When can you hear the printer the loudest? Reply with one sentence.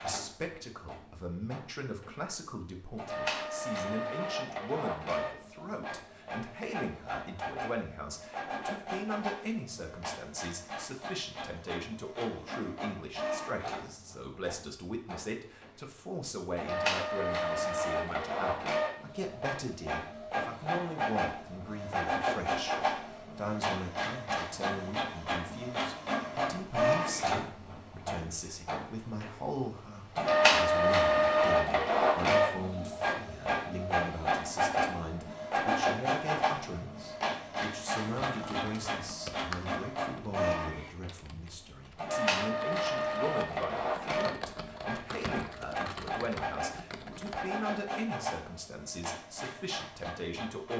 The loudest moment of the printer is at 31 seconds.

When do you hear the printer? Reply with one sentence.
The printer can be heard from 0.0 to 50.7 s.